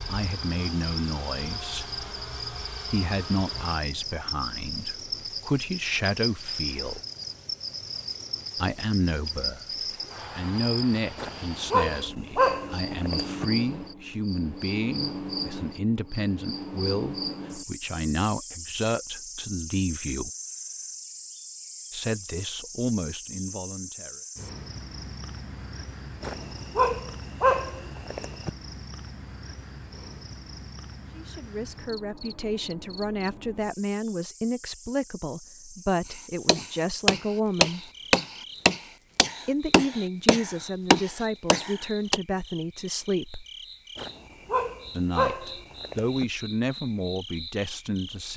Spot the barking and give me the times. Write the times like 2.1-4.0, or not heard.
11.2-13.4, 26.2-28.5, 44.0-46.2.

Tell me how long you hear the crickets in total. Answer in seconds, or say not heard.
48 s.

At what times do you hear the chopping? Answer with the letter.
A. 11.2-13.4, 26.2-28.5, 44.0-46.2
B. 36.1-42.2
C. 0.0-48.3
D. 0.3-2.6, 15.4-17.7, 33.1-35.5
B.